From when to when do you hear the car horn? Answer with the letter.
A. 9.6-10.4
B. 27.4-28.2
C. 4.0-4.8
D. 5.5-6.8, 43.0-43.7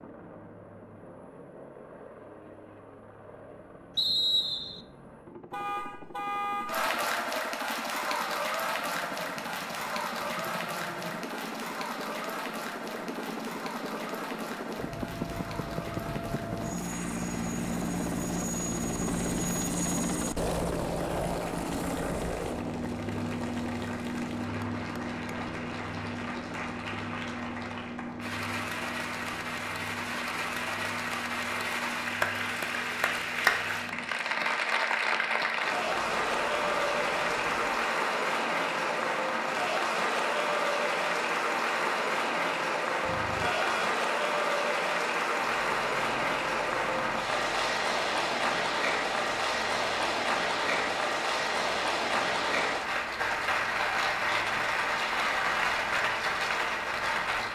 D.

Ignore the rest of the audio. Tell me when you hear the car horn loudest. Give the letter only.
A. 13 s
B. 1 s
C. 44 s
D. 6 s
D.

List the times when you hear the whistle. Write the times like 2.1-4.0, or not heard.
4.0-4.8.